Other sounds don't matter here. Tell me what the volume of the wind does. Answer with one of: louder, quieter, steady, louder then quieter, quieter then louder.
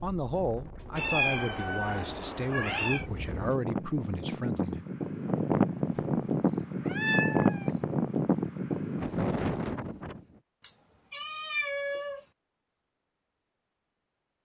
louder.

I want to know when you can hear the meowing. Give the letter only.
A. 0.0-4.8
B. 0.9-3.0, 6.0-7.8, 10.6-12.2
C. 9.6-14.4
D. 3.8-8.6
B.